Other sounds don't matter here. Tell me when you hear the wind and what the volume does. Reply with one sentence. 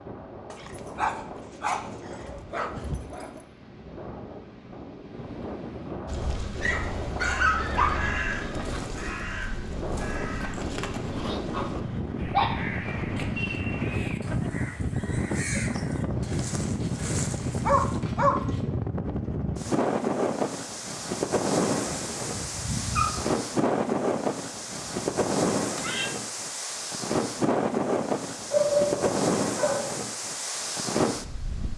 The wind can be heard from 0.0 to 31.7 s, getting louder.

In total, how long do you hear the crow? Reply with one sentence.
The crow can be heard for 10 seconds in total.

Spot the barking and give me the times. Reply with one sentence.
The barking can be heard from 0.5 to 3.4 s, from 6.6 to 8.2 s, from 11.1 to 12.9 s, from 16.2 to 18.4 s, from 21.7 to 23.3 s and from 28.5 to 29.9 s.